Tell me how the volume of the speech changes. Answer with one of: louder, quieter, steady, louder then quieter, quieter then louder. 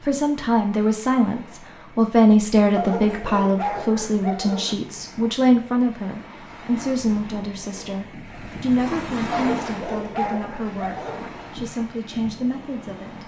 quieter.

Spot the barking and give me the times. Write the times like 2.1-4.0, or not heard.
2.8-4.8, 9.3-11.3.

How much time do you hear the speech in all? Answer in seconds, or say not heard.
13 s.